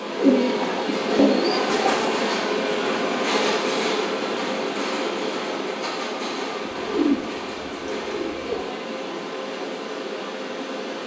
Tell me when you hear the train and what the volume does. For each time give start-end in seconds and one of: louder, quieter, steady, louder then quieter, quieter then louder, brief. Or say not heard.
0.0-11.0 quieter.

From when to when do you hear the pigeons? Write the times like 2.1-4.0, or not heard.
0.1-2.1, 6.6-8.7.